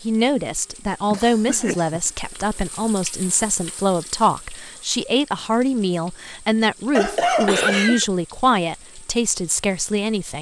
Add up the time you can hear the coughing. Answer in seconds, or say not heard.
2 s.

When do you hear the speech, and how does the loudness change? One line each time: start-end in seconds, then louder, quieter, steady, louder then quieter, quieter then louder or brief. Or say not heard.
0.0-10.3 steady.